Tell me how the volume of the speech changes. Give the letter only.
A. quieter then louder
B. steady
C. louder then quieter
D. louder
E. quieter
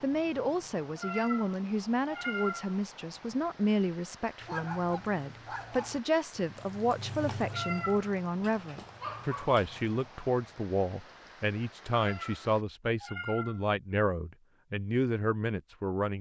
B.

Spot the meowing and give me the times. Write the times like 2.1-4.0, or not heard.
0.9-2.8, 7.5-8.1, 11.9-13.7.